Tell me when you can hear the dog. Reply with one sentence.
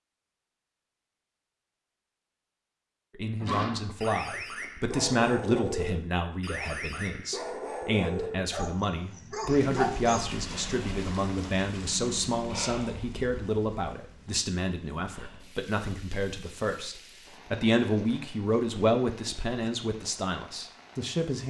The dog can be heard from 3.4 to 10.2 s.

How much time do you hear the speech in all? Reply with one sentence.
You can hear the speech for 18 seconds altogether.